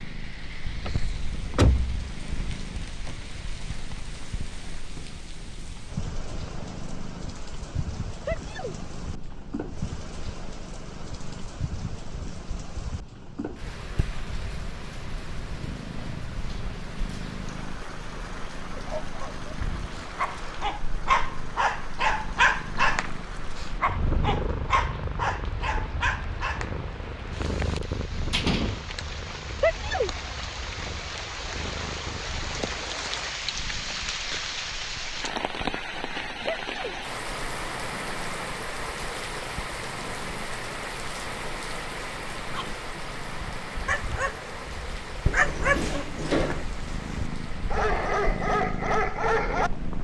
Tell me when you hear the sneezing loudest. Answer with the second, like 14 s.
30 s.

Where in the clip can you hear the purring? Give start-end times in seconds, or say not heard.
0.0-49.9.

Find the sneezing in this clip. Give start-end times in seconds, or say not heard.
8.2-8.8, 29.6-30.1, 36.5-37.0.